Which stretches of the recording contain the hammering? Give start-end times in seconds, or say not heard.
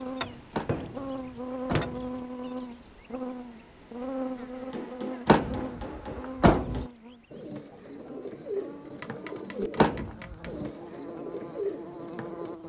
0.2-2.2, 4.7-7.0, 8.8-10.5.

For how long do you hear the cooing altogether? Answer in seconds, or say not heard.
5 s.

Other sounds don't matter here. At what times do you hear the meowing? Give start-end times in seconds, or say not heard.
not heard.